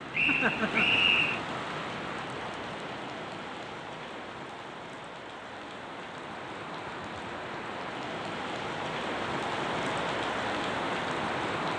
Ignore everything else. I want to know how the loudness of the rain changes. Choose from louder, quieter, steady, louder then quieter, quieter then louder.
quieter then louder.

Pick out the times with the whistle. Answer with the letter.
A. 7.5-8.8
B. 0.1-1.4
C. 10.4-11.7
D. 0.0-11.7
B.